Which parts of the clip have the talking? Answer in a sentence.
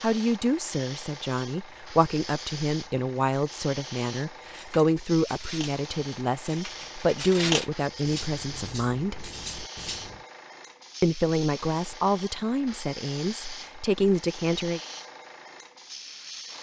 The talking can be heard from 0.0 to 9.2 s and from 11.0 to 14.8 s.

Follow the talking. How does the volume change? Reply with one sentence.
The volume of the talking stays about the same.